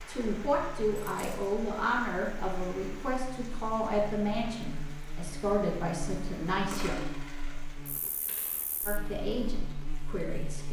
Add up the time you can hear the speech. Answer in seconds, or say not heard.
9 s.